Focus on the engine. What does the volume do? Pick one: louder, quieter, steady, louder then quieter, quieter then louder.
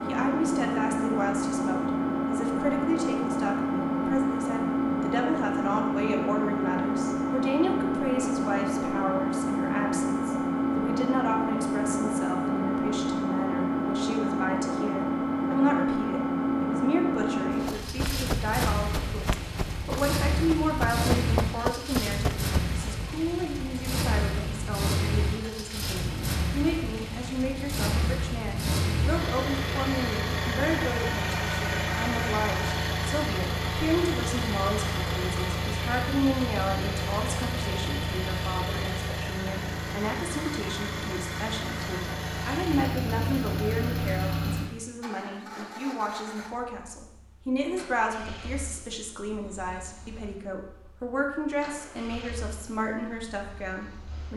quieter.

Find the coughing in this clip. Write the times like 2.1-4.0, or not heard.
not heard.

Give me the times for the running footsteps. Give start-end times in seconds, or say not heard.
17.5-22.8.